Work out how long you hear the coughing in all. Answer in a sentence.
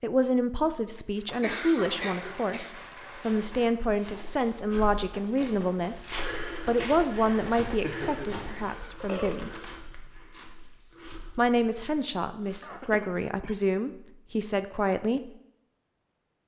The coughing can be heard for 4 seconds in total.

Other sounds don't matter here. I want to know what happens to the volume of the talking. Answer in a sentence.
The loudness of the talking stays about the same.